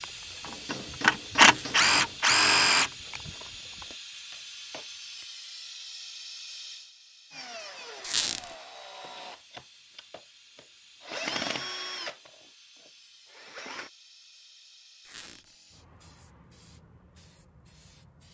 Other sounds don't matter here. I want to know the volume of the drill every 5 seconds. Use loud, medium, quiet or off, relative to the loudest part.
loud, quiet, quiet, off.